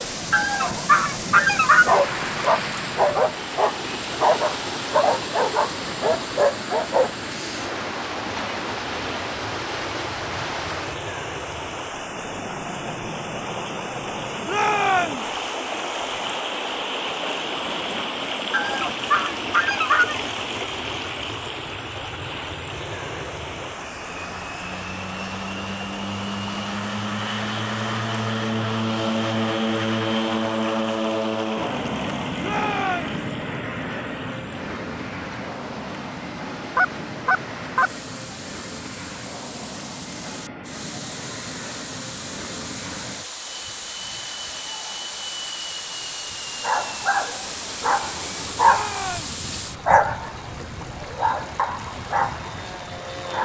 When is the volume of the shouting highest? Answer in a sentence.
The loudest moment of the shouting is at 15 seconds.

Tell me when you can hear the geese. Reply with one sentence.
The geese can be heard from 0.3 to 2.0 s, from 18.5 to 20.2 s and from 36.8 to 37.9 s.